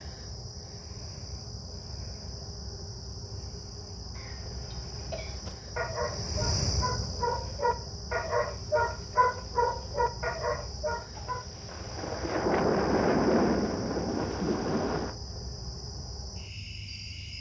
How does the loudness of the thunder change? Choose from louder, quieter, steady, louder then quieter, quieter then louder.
louder then quieter.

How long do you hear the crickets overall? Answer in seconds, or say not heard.
17 s.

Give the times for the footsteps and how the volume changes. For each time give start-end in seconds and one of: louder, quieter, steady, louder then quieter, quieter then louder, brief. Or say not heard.
not heard.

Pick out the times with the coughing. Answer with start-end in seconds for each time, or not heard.
4.1-5.7.